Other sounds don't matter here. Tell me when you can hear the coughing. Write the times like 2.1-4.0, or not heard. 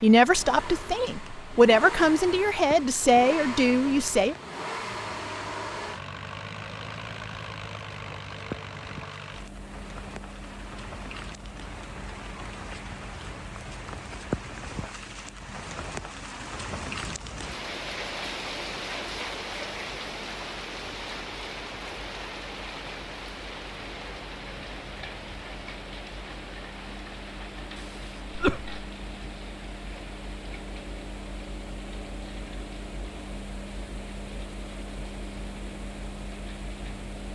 27.8-28.8.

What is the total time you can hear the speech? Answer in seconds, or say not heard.
4 s.